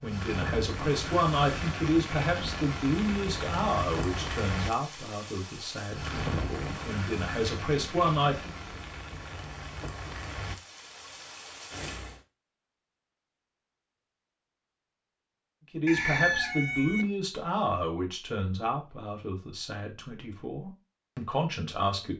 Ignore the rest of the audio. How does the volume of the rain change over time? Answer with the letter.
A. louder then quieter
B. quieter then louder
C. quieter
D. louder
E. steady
C.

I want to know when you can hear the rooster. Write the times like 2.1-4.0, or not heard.
15.8-17.1.